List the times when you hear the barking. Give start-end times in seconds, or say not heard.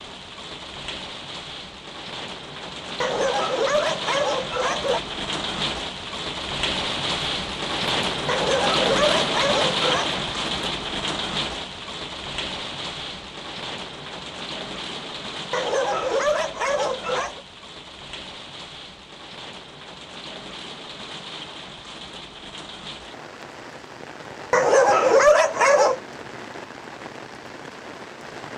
3.0-5.0, 8.2-10.2, 15.5-17.4, 24.5-26.0.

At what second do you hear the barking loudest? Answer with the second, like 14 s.
25 s.